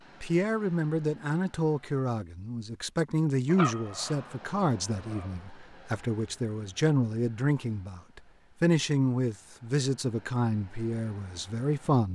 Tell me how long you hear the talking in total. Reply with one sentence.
You can hear the talking for 12 seconds altogether.